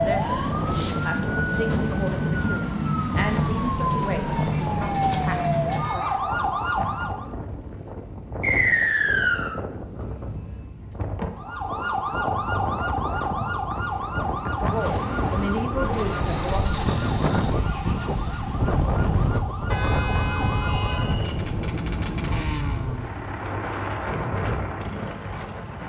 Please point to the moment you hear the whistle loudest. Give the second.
9 s.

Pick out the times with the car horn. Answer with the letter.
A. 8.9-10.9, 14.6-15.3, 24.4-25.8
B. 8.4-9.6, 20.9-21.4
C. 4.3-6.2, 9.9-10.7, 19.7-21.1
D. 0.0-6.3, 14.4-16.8
C.